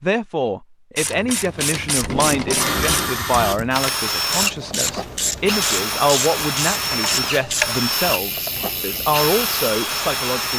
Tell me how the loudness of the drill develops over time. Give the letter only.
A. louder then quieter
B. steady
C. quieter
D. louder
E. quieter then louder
B.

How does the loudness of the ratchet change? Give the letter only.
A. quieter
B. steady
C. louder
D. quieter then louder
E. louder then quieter
B.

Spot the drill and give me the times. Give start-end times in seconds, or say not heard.
2.5-10.5.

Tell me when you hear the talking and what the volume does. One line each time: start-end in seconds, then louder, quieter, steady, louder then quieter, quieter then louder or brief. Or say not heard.
0.0-10.5 steady.